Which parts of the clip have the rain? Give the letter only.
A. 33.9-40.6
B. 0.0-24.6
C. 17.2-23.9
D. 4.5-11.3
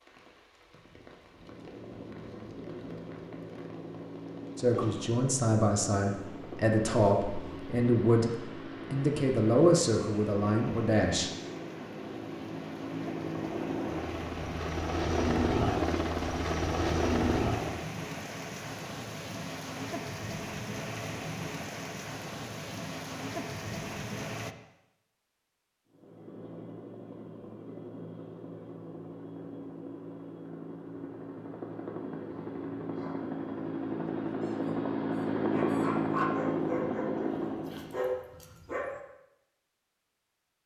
B.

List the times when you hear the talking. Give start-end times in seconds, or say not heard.
4.5-11.3.